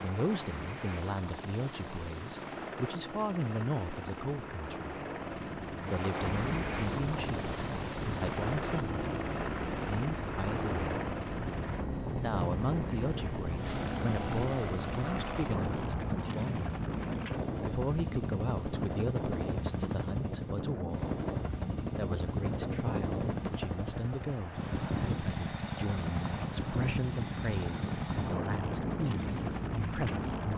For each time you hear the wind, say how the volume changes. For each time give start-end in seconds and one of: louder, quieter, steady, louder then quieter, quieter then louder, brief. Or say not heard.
6.4-30.5 steady.